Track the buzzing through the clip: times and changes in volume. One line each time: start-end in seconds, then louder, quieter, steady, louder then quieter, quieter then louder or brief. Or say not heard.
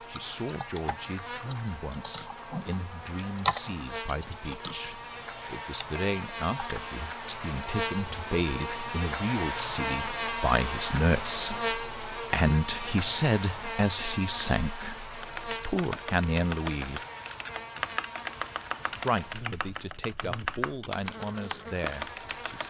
0.0-22.6 louder then quieter.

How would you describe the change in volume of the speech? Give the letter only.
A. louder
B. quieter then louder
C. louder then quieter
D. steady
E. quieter
C.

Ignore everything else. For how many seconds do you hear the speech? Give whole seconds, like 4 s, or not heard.
21 s.